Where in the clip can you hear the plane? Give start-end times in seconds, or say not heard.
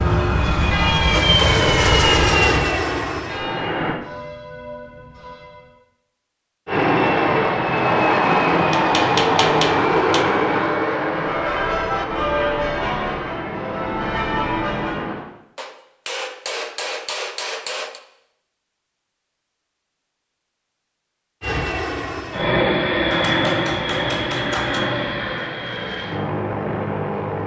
0.0-4.0, 6.7-15.2, 21.4-27.4.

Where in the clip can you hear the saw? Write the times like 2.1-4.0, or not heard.
not heard.